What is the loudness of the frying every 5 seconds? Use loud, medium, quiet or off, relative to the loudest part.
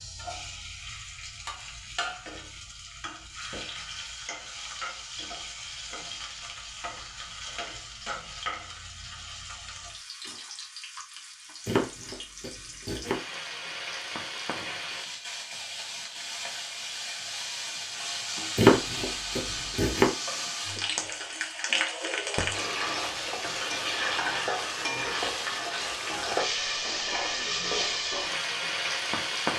medium, medium, medium, medium, loud, loud.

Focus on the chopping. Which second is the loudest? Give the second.
19 s.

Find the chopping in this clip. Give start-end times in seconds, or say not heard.
11.7-13.2, 18.6-20.1.